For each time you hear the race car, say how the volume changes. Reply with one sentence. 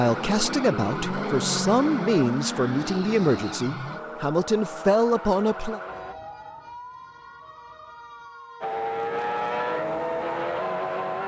The race car can be heard from 0.0 to 6.2 s, getting quieter; and briefly from 8.6 to 11.2 s.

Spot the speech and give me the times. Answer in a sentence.
The speech can be heard from 0.0 to 5.8 s.